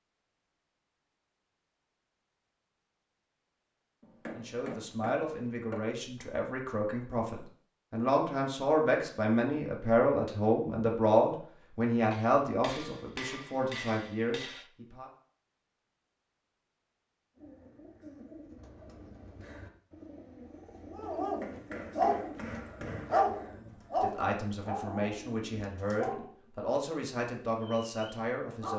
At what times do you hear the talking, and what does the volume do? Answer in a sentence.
The talking can be heard from 4.3 to 15.1 s, getting louder then quieter; and from 23.6 to 28.7 s, at a steady volume.